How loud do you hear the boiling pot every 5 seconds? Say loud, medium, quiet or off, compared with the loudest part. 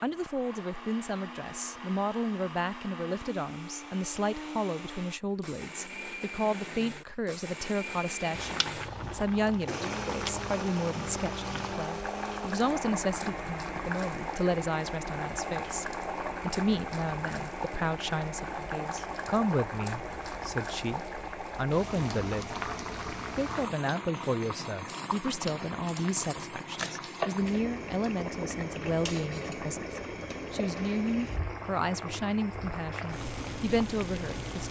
off, loud, loud, loud, loud, loud, loud.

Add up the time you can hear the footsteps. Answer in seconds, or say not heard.
not heard.